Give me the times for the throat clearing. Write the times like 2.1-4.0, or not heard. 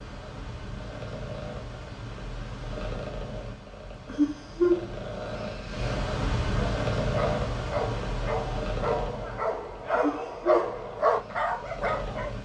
not heard.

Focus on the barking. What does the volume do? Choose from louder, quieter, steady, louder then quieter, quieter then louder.
louder.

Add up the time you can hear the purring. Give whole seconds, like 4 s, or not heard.
12 s.